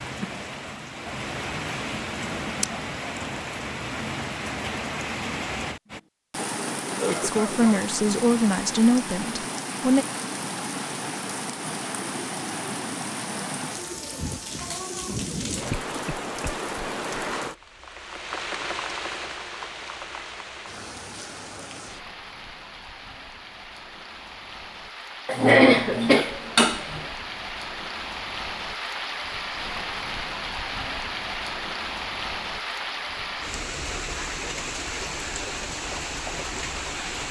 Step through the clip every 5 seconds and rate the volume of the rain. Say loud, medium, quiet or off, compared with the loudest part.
loud, loud, loud, loud, medium, loud, loud, loud.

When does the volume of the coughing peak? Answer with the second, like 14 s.
26 s.